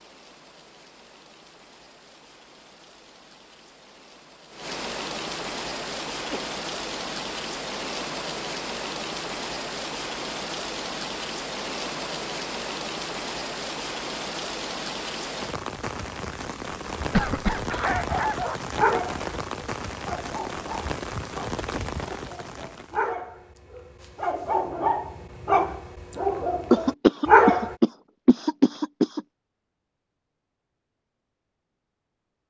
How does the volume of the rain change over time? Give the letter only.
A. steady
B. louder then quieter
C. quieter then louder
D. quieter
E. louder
E.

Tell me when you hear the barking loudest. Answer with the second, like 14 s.
27 s.